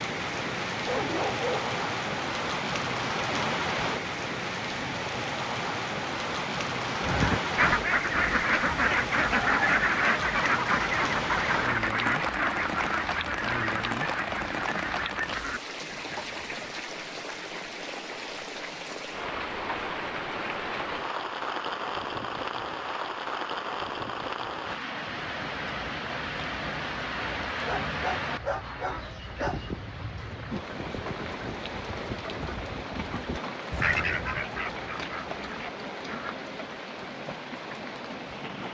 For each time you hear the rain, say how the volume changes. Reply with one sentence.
The rain can be heard from 0.0 to 38.6 s, getting quieter.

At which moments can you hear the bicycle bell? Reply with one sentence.
The bicycle bell can't be heard in this clip.